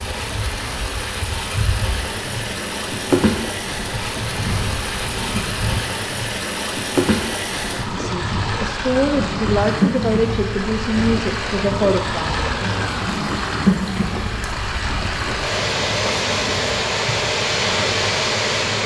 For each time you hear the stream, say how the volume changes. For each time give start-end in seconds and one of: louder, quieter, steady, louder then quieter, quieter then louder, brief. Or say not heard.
0.0-18.8 louder.